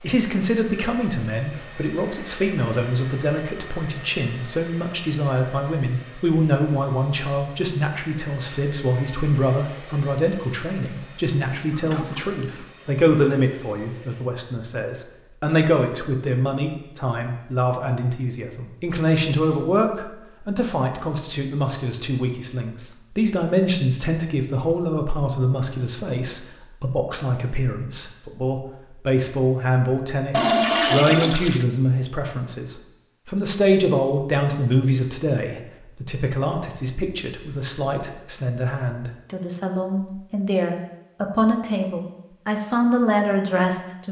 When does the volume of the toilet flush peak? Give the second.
31 s.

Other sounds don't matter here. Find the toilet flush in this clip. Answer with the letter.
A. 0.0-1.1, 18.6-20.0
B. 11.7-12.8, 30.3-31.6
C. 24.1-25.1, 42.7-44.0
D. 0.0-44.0
B.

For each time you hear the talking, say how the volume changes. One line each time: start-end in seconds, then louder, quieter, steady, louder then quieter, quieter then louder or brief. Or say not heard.
0.0-44.0 steady.